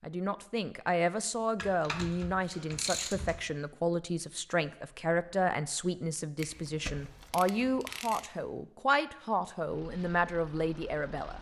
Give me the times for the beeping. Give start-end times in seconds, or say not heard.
not heard.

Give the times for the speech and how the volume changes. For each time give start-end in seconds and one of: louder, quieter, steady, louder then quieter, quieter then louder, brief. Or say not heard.
0.0-11.3 steady.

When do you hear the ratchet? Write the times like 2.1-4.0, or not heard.
1.6-3.5, 6.3-8.3.